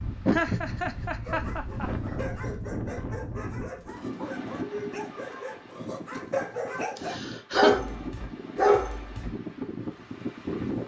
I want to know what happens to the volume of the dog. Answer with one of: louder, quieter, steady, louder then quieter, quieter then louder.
louder.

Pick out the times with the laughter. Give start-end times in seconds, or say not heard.
0.2-1.9, 7.0-7.8.